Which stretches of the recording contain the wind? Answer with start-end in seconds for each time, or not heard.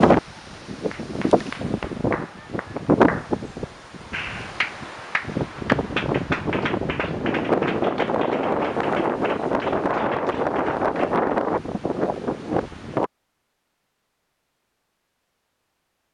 0.0-13.1.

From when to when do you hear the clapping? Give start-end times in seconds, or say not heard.
0.9-11.2.